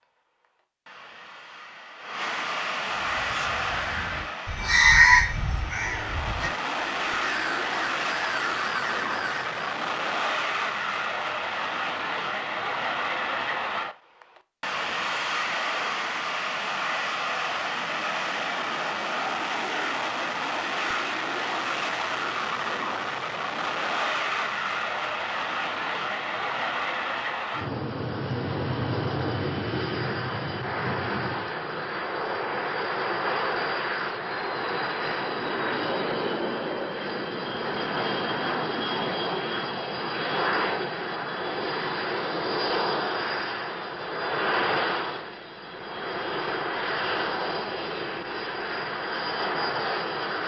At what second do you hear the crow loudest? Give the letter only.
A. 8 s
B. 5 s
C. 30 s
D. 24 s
B.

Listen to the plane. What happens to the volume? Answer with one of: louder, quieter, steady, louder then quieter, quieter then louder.
steady.